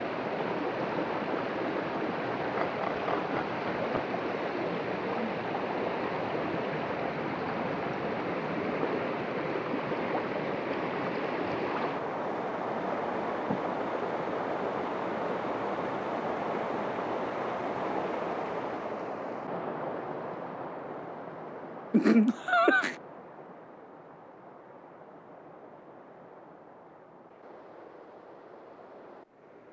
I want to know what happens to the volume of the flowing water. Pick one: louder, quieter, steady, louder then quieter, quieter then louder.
quieter.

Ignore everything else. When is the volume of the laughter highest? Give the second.
22 s.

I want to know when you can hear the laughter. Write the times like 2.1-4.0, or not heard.
2.4-4.0, 21.9-22.9.